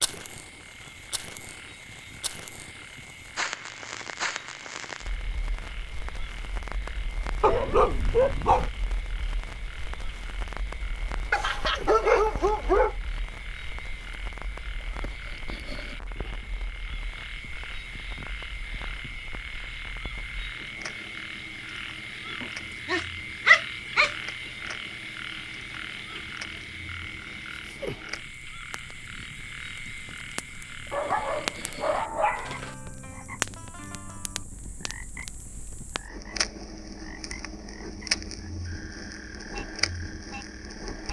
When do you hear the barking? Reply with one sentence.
The barking can be heard from 7.4 to 8.7 s, from 11.3 to 12.9 s, from 22.4 to 24.1 s and from 30.9 to 32.8 s.